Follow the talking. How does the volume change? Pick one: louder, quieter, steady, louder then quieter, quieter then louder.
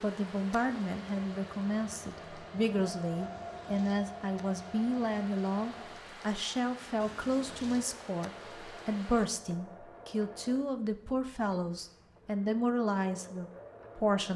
steady.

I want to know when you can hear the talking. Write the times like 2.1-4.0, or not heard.
0.0-14.3.